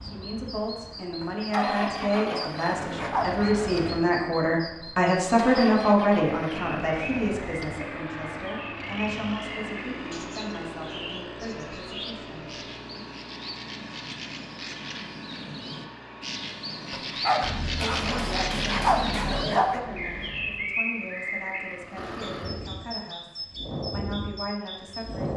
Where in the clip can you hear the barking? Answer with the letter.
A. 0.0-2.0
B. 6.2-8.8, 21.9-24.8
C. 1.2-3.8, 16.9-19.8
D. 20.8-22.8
C.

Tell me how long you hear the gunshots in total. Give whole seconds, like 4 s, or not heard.
2 s.